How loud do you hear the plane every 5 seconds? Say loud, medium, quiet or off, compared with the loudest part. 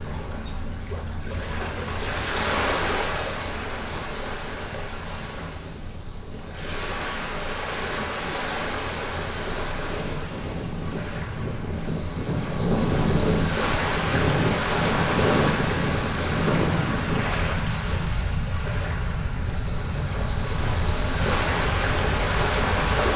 quiet, quiet, loud, loud, medium.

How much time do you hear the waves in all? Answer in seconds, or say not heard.
23 s.